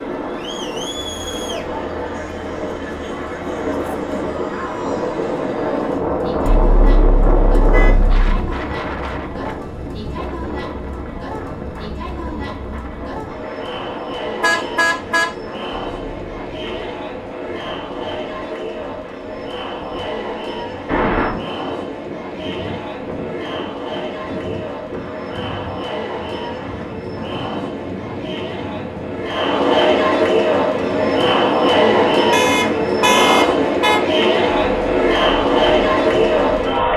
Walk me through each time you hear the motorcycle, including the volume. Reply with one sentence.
The motorcycle can't be heard in this clip.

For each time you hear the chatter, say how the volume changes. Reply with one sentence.
The chatter can be heard from 0.0 to 36.9 s, getting louder.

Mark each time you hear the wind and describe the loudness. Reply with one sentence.
You can hear the wind from 0.0 to 36.9 s, getting quieter.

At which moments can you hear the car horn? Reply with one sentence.
The car horn can be heard from 6.5 to 8.5 s, from 14.4 to 16.8 s and from 32.3 to 34.0 s.